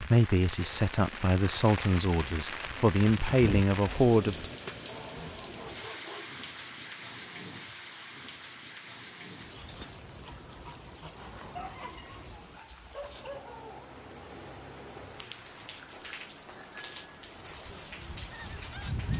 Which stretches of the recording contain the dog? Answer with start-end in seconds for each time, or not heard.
4.8-6.4, 11.6-13.9.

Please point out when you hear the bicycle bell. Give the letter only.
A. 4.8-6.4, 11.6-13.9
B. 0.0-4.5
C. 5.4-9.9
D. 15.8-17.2
D.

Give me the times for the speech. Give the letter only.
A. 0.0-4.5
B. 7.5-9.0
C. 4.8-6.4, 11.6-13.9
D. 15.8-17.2
A.